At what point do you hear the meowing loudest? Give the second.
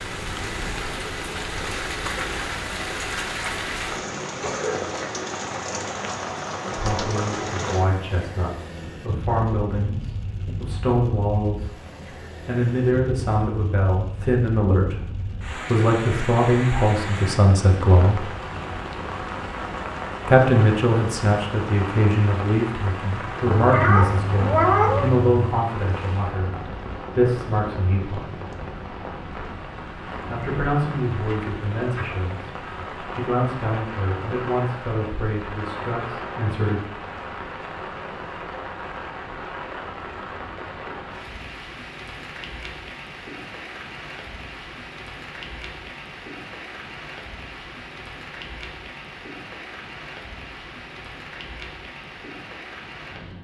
25 s.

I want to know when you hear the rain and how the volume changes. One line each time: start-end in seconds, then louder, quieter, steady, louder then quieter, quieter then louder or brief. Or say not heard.
0.0-53.3 quieter.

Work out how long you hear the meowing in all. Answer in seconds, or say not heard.
2 s.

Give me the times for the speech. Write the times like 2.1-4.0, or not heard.
6.7-11.7, 12.4-18.2, 20.2-28.4, 30.2-36.8.